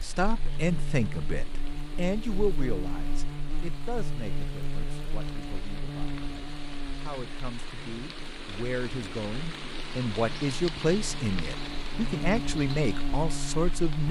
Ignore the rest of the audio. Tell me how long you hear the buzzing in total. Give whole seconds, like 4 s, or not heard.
14 s.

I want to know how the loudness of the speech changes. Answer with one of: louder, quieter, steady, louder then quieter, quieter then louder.
quieter then louder.